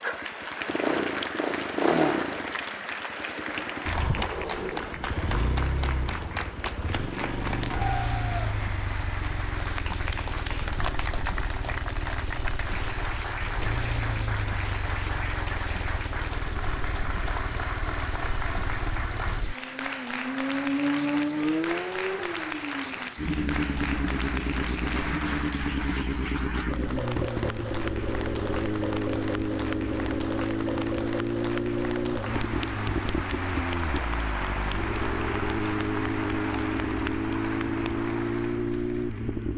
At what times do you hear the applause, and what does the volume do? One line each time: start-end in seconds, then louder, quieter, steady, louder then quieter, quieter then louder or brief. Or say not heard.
0.0-39.5 steady.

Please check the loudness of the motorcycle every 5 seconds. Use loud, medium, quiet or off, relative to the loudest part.
loud, medium, medium, medium, loud, loud, loud, loud.